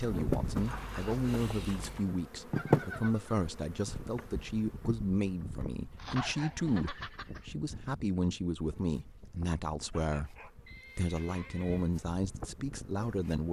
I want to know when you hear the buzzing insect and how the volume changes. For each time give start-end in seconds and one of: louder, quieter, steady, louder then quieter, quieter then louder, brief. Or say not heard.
0.0-13.4 quieter then louder.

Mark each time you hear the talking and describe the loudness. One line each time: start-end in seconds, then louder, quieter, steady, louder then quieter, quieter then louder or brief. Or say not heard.
0.0-13.4 steady.